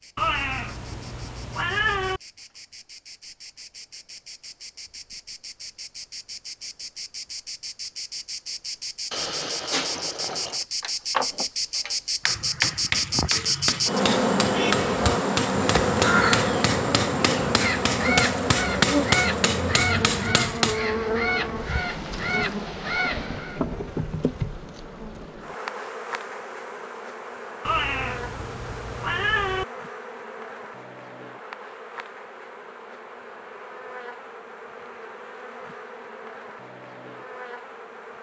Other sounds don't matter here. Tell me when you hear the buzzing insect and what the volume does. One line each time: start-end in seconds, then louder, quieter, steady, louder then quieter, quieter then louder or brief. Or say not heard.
0.0-38.1 louder then quieter.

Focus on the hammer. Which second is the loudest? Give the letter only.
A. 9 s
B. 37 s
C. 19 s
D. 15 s
C.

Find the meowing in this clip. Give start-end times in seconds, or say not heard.
0.1-2.2, 27.6-29.6.